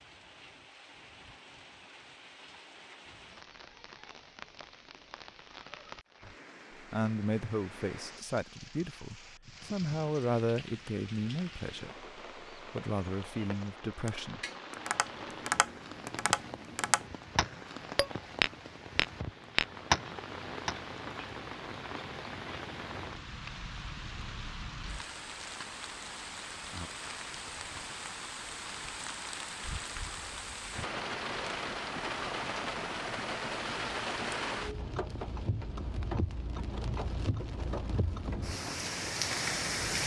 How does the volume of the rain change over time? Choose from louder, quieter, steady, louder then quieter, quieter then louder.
louder.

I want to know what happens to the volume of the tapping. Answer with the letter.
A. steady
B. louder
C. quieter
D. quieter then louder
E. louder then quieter
B.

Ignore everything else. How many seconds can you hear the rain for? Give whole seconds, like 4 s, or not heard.
40 s.